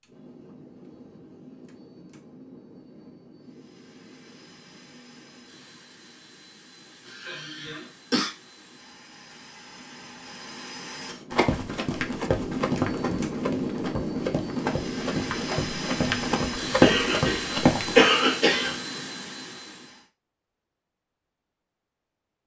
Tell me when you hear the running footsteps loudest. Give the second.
17 s.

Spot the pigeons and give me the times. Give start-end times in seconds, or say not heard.
not heard.